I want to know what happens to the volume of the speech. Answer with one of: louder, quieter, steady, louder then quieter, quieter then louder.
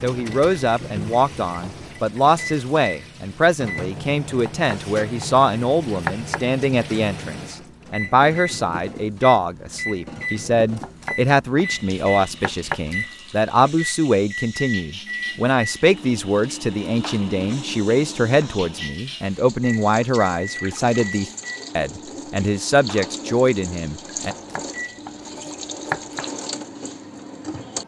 steady.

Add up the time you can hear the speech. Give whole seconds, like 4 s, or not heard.
24 s.